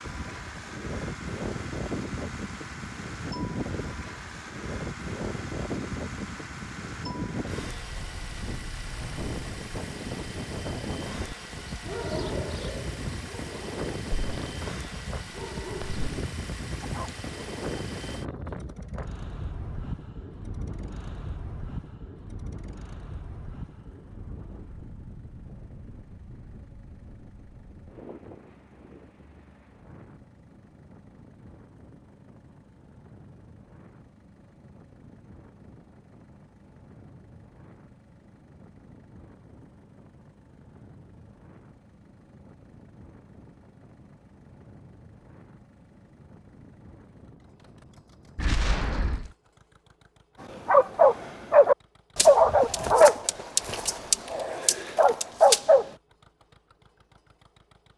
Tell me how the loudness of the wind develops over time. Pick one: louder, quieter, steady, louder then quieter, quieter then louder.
quieter.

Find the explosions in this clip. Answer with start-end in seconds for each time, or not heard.
48.4-49.3.